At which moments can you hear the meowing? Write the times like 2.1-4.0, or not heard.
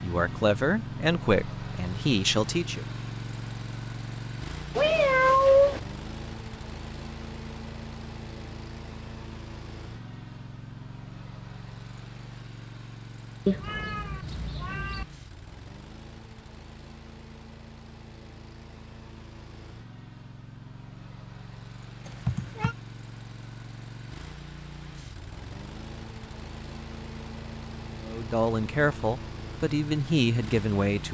4.8-5.8, 13.4-15.1, 22.1-22.8.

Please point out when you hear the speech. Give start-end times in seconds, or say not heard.
0.0-2.9, 28.1-31.0.